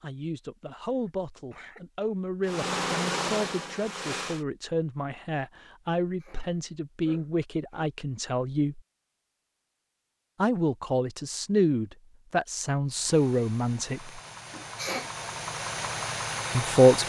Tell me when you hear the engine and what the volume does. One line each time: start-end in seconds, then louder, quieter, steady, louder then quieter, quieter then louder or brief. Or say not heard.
2.4-4.5 brief
12.8-17.0 louder.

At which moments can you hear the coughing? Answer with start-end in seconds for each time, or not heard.
0.8-1.9, 6.0-7.9, 14.5-15.1.